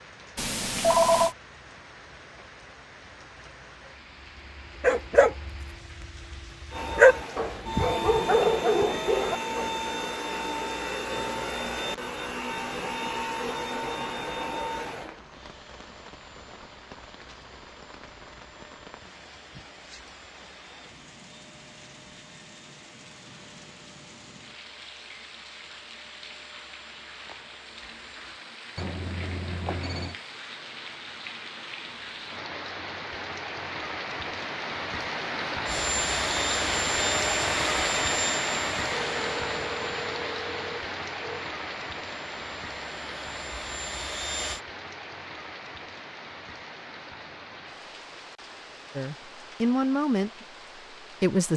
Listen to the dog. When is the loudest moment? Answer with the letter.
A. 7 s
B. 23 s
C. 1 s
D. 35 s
A.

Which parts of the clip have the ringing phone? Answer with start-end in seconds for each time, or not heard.
0.3-1.4, 28.8-30.1, 38.9-41.5.